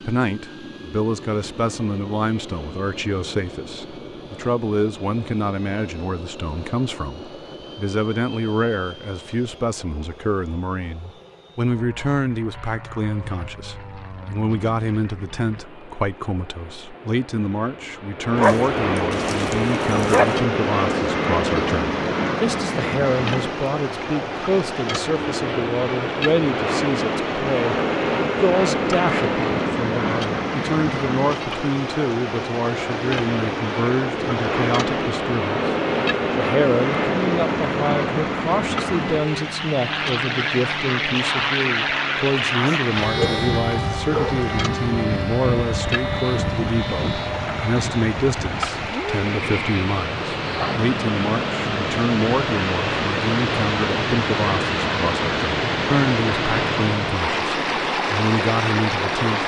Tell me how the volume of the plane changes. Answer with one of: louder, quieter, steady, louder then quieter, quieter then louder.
louder.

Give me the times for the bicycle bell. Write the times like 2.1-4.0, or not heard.
not heard.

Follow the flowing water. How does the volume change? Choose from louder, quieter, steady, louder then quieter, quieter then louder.
louder.